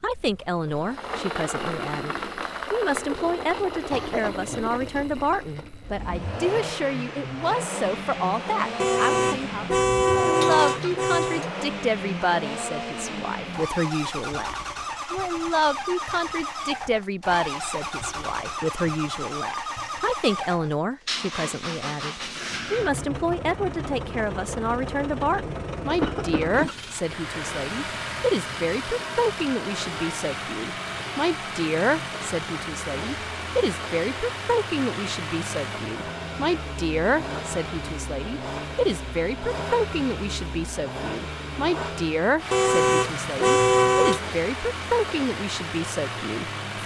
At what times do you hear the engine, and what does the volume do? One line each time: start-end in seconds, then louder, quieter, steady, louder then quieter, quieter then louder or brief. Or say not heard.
0.0-46.8 steady.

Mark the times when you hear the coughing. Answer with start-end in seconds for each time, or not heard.
3.9-4.7, 26.0-27.7.